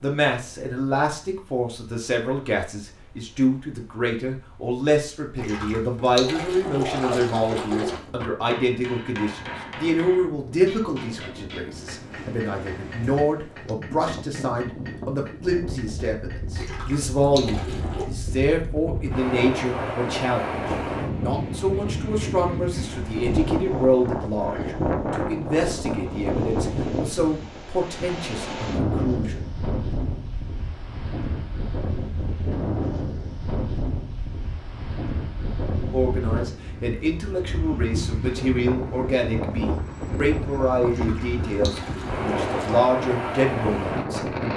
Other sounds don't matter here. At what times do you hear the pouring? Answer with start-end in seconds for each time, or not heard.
5.3-8.1, 16.6-18.1, 40.9-42.9.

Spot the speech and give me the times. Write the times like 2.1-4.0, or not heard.
0.0-29.4, 35.9-44.5.